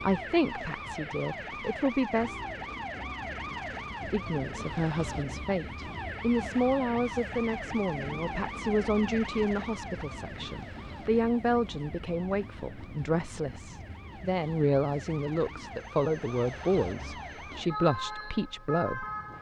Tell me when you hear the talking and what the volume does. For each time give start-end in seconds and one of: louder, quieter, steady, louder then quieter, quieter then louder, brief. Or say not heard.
0.0-2.4 brief
4.0-19.1 steady.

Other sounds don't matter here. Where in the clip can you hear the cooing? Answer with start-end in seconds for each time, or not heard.
not heard.